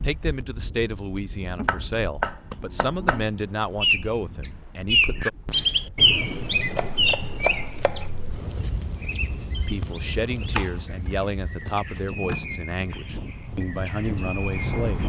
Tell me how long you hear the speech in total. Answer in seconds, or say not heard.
11 s.